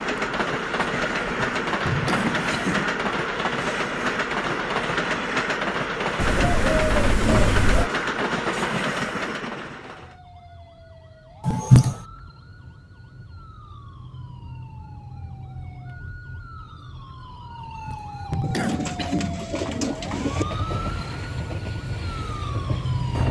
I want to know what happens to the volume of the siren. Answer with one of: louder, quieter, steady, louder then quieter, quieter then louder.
louder.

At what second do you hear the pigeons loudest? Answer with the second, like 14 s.
7 s.